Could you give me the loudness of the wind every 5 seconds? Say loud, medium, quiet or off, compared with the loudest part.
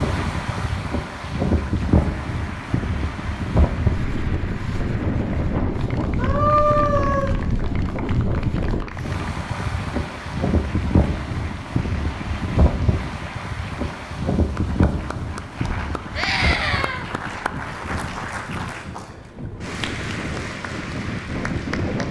loud, loud, loud, medium, loud.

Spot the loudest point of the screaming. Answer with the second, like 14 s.
7 s.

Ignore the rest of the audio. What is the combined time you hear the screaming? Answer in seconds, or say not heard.
2 s.